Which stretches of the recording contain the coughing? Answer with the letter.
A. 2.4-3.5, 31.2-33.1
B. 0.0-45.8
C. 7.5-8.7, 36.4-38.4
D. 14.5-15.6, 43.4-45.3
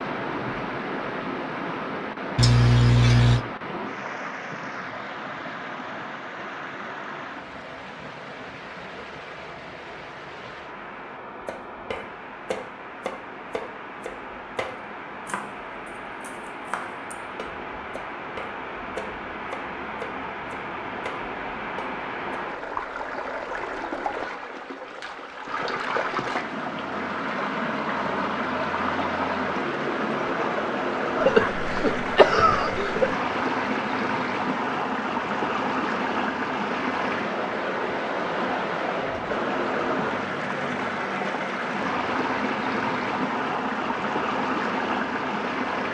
A.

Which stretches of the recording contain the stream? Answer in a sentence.
You can hear the stream from 0.0 to 45.8 s.